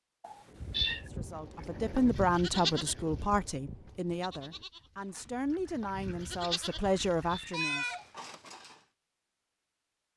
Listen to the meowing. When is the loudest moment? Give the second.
1 s.